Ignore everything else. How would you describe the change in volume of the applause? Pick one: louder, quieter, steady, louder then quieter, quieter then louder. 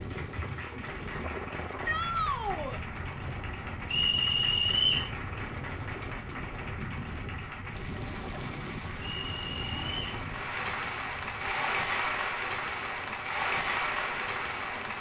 louder.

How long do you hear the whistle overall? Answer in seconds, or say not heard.
2 s.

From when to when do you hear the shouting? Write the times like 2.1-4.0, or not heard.
1.9-2.8.